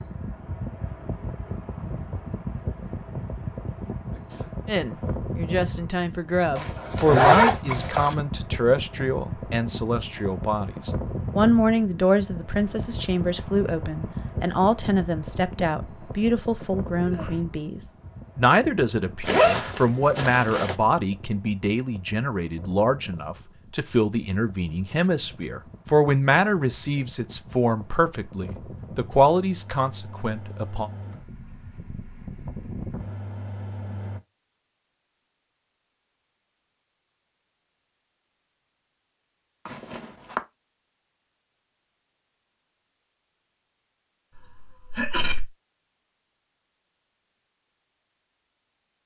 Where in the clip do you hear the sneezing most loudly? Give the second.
45 s.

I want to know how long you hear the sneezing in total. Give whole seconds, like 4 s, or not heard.
2 s.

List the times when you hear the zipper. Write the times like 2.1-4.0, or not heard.
6.5-8.2, 19.2-20.8, 39.6-40.4.